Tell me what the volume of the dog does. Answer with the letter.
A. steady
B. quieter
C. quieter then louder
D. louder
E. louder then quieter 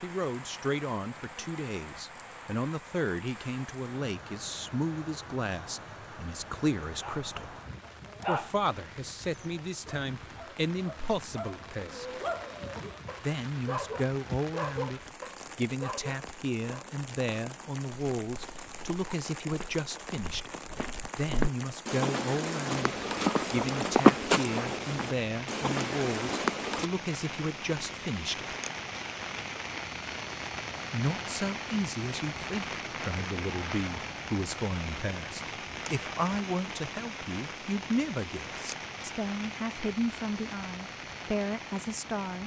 C.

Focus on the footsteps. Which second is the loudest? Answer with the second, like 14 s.
24 s.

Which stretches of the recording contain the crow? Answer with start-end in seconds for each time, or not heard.
not heard.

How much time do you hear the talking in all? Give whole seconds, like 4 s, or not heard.
38 s.